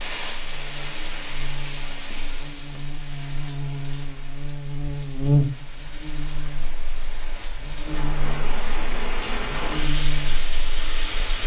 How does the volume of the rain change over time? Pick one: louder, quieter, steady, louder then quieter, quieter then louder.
quieter then louder.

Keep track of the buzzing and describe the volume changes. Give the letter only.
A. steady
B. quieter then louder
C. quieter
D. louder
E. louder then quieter
E.